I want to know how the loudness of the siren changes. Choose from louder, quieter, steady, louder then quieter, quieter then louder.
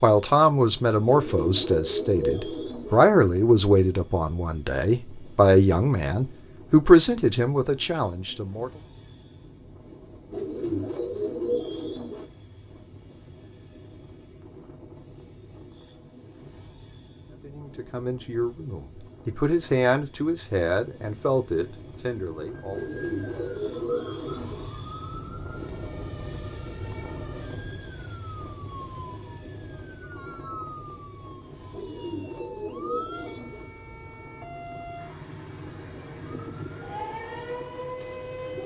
louder.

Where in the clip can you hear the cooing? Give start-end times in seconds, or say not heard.
1.1-3.0, 10.3-12.2, 22.7-24.7, 31.7-33.7.